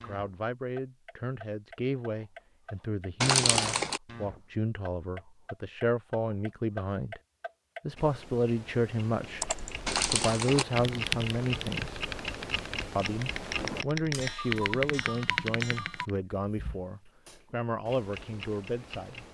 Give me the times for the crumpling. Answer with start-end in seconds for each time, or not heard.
3.2-4.0, 9.8-10.7.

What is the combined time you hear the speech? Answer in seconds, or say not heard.
17 s.